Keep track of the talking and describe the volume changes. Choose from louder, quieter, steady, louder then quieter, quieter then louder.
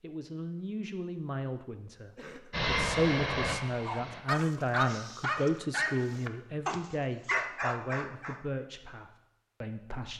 louder then quieter.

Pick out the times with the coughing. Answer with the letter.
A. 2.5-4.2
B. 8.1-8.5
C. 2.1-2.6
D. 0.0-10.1
C.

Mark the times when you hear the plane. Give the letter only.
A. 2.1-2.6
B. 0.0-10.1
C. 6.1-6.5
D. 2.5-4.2
D.